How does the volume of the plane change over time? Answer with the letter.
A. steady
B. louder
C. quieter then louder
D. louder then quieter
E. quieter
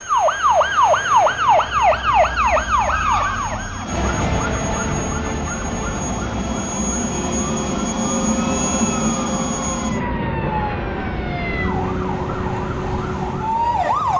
D.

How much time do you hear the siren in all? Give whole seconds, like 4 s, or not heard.
14 s.